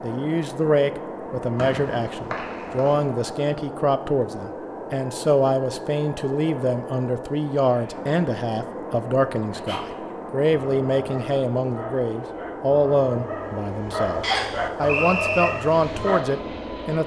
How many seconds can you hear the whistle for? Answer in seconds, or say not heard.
3 s.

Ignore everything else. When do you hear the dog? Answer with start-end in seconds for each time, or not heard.
9.5-16.2.